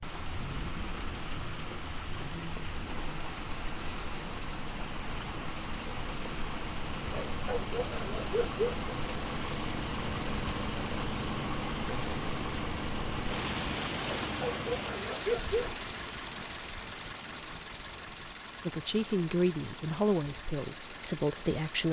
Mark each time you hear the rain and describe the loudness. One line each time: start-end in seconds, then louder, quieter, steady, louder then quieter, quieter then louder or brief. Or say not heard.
0.0-21.8 quieter.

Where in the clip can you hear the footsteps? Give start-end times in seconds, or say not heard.
not heard.